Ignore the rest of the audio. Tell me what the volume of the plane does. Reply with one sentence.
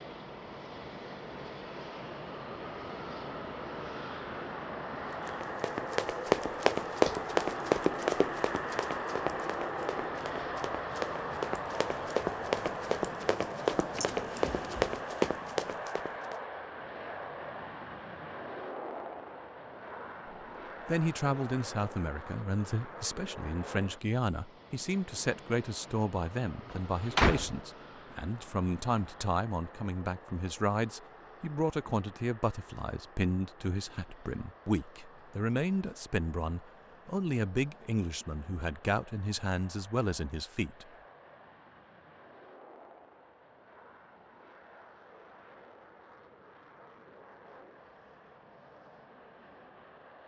The volume of the plane goes down.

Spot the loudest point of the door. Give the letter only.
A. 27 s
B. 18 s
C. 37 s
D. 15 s
A.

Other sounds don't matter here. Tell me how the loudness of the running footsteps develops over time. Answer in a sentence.
The loudness of the running footsteps goes down, then up.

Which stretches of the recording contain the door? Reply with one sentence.
The door can be heard from 13.9 to 14.9 s and from 26.7 to 27.6 s.